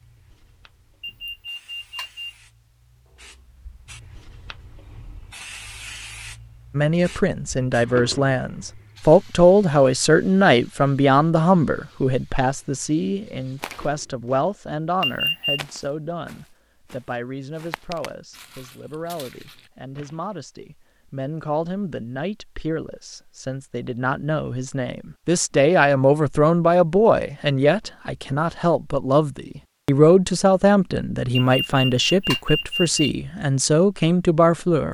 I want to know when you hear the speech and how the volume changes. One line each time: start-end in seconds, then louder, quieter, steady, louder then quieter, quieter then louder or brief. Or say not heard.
6.7-34.8 quieter then louder.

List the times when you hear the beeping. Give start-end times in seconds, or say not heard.
1.0-2.3, 15.0-15.6, 31.4-33.0.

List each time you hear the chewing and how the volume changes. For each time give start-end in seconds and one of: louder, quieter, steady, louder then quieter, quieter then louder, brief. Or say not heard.
not heard.